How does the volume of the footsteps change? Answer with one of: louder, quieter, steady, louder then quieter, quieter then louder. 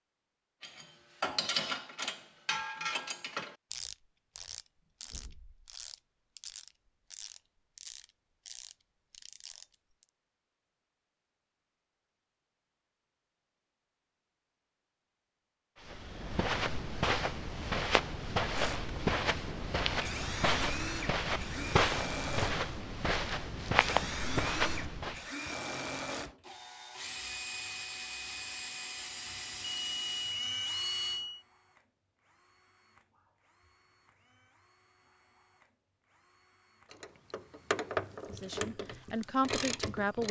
steady.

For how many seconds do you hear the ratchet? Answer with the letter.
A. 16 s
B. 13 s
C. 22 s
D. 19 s
B.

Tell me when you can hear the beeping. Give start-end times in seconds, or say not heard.
29.6-31.4.